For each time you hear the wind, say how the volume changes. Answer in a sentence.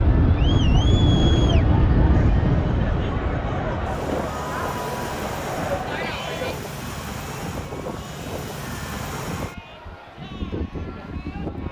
You can hear the wind from 0.0 to 11.6 s, getting quieter.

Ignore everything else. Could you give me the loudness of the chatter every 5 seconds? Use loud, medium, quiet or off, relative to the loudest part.
loud, loud, quiet.